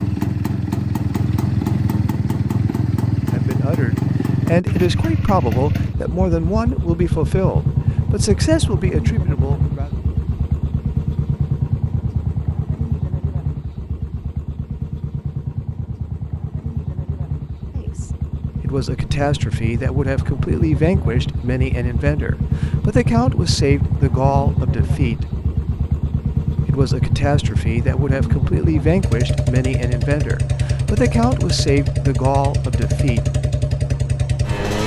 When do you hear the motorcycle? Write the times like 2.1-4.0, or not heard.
0.0-34.8.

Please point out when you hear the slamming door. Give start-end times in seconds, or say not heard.
not heard.